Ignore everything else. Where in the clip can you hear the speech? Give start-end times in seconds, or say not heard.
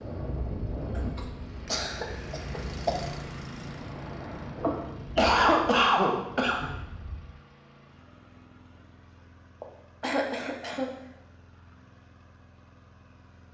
not heard.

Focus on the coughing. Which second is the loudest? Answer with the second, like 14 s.
5 s.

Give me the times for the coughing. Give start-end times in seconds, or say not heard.
0.9-3.0, 4.5-6.8, 9.6-10.9.